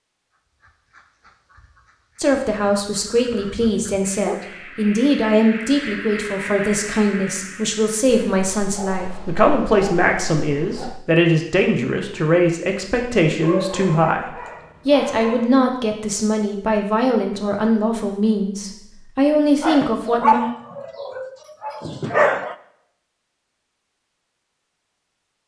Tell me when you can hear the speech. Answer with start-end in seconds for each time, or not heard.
2.1-20.4.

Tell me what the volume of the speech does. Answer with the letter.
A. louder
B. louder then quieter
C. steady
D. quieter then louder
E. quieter
C.